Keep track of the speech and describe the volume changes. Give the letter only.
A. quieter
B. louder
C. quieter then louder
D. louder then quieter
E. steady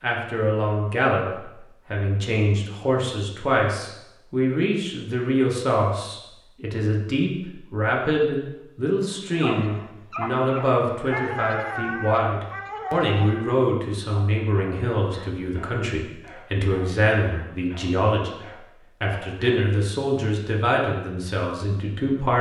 E.